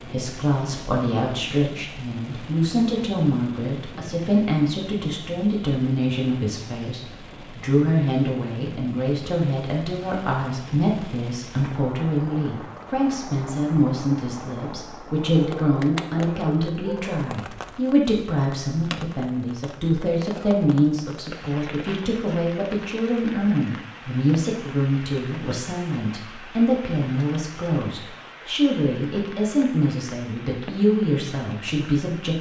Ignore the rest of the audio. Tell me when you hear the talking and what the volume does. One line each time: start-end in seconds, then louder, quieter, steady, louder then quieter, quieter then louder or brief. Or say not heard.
0.0-32.3 steady.